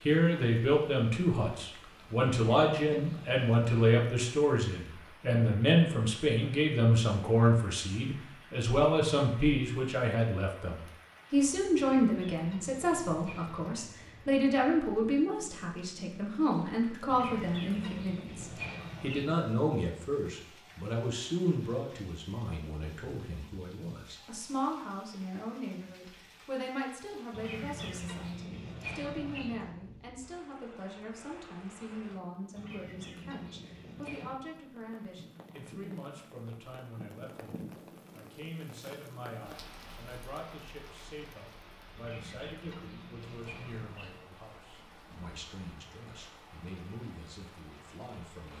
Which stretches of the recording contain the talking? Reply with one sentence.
You can hear the talking from 0.1 to 48.5 s.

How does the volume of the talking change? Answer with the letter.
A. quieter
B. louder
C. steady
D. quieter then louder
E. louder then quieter
A.